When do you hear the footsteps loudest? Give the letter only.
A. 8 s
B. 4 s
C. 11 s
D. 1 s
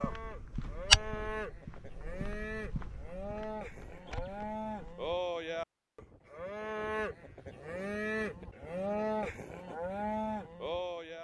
D.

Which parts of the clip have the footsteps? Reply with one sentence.
You can hear the footsteps from 0.0 to 5.2 s.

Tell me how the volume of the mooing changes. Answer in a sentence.
The volume of the mooing goes up.